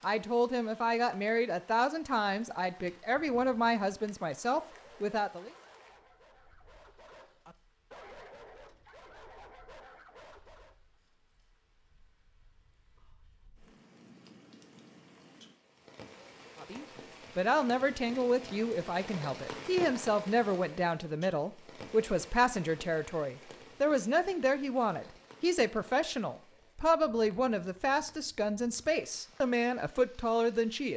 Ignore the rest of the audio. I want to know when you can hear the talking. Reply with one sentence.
The talking can be heard from 0.0 to 5.5 s and from 16.6 to 30.9 s.